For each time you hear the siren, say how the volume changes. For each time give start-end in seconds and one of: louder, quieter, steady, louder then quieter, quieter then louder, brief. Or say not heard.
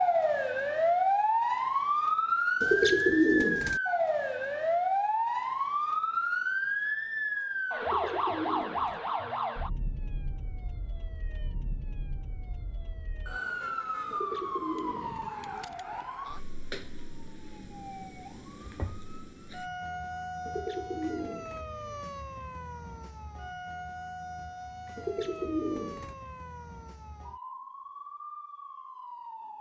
0.0-29.5 quieter.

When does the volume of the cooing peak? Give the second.
3 s.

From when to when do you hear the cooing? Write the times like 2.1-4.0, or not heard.
2.6-3.8, 7.8-9.0, 14.1-15.3, 20.4-21.6, 24.9-26.1.